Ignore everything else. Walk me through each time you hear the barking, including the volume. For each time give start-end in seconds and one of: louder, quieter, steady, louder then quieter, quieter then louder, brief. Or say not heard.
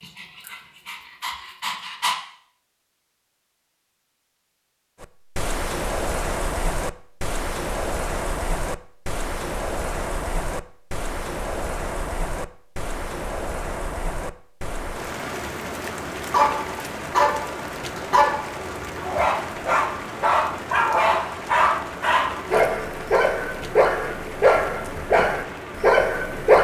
0.0-2.1 brief
16.3-26.6 steady.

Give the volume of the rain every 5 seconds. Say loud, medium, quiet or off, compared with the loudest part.
off, loud, loud, loud, medium, medium.